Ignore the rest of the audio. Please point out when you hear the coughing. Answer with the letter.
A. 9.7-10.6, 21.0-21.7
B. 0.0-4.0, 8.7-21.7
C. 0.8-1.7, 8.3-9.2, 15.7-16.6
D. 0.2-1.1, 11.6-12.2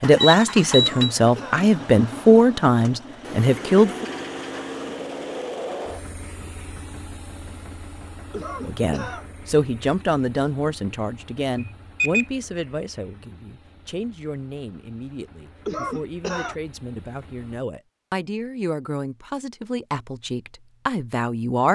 C.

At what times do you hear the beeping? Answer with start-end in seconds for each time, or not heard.
0.2-1.1, 11.6-12.2.